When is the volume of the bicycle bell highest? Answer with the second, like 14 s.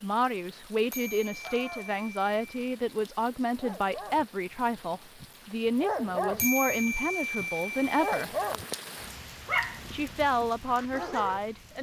7 s.